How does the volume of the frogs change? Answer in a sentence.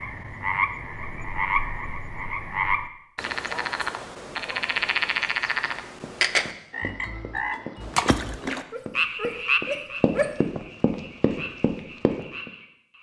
The volume of the frogs goes down.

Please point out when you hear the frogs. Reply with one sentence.
The frogs can be heard from 0.0 to 12.9 s.